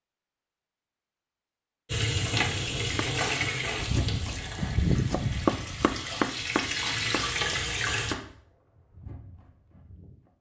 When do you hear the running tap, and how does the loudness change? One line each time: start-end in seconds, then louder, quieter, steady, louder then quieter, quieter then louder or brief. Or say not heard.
1.9-8.2 quieter then louder.